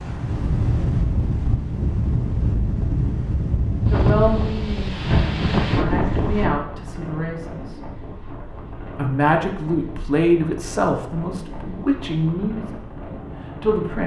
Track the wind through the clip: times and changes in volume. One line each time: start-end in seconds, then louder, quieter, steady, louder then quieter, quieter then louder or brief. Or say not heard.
0.0-14.0 quieter.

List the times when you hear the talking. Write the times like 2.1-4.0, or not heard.
3.9-7.8, 8.9-14.0.